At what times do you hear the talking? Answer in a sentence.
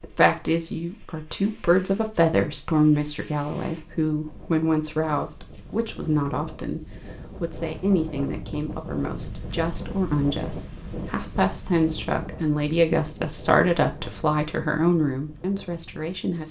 You can hear the talking from 0.0 to 16.4 s.